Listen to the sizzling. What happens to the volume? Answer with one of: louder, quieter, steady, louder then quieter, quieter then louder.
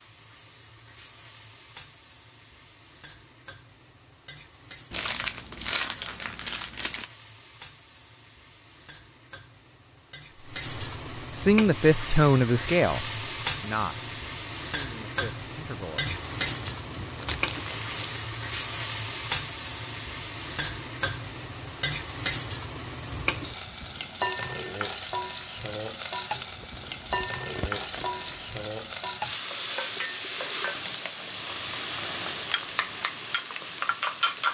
louder.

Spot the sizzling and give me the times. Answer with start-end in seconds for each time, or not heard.
0.0-34.4.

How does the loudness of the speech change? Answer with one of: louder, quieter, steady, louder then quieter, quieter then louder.
quieter.